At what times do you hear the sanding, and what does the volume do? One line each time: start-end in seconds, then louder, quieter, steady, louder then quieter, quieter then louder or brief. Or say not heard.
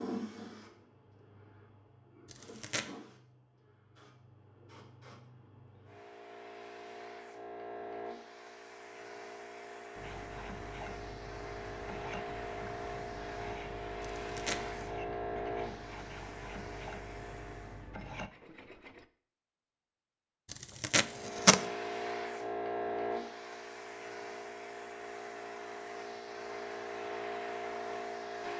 9.9-19.1 steady.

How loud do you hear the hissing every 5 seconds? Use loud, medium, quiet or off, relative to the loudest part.
medium, medium, loud, loud, loud, loud.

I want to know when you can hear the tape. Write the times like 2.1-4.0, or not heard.
2.2-2.9, 14.0-14.8, 20.5-21.6.